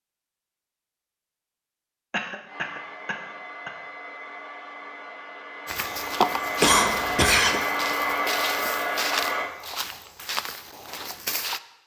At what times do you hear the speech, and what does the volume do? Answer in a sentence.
The speech can't be heard in this clip.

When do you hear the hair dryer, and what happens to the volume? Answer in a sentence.
The hair dryer can be heard from 2.5 to 9.5 s, getting louder.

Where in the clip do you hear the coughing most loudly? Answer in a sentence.
The loudest moment of the coughing is at 7 seconds.